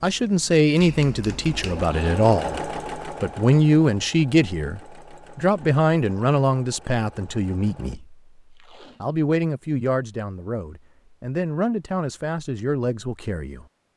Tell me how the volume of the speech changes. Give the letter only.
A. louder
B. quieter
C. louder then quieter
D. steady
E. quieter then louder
B.